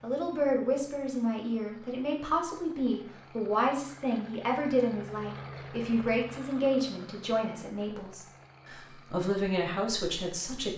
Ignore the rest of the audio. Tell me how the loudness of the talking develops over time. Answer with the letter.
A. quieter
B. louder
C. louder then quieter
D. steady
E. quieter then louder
D.